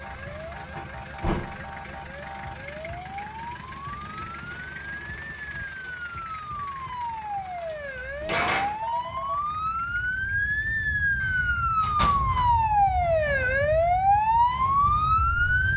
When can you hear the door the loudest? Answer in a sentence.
The loudest moment of the door is at 8 seconds.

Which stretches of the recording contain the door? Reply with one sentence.
The door can be heard from 0.8 to 1.7 s, from 7.5 to 8.8 s and from 11.2 to 12.5 s.